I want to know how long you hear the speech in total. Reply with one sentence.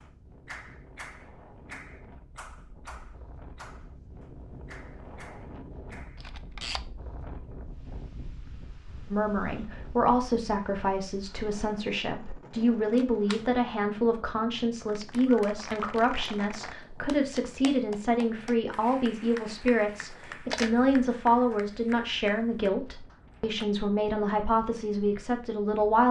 The speech can be heard for 17 seconds in total.